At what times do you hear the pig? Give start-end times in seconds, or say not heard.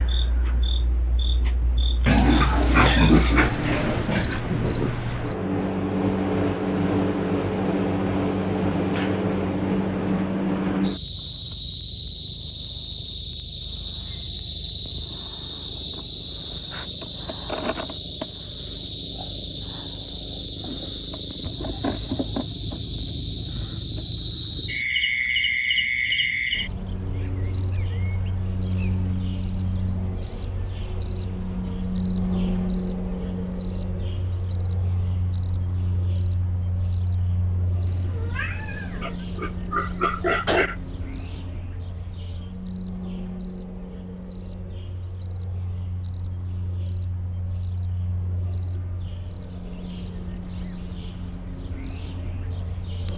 2.0-4.4, 39.0-40.8.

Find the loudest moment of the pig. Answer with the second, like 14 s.
3 s.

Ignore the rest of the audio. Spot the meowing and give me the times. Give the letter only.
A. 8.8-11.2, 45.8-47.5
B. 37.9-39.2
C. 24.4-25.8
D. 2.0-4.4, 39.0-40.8
B.